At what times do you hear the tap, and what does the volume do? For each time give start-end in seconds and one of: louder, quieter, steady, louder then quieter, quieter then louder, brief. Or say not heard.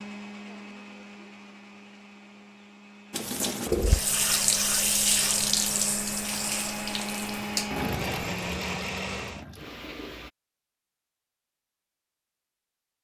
3.1-10.3 quieter.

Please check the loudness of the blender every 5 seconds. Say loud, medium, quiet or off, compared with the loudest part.
medium, loud, off.